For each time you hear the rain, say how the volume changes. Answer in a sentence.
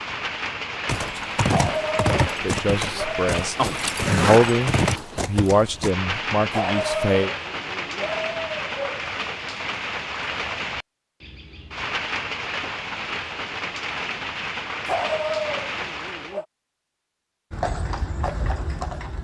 The rain can be heard from 0.0 to 16.4 s, at a steady volume.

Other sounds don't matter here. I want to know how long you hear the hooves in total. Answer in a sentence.
The hooves can be heard for 7 seconds in total.